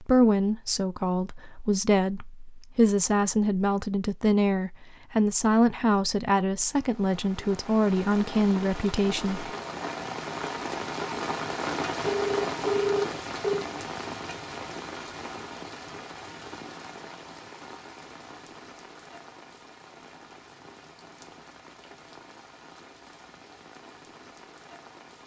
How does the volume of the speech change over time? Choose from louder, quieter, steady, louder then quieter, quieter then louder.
steady.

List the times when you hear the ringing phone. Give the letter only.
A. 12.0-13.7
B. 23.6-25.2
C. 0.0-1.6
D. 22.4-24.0
A.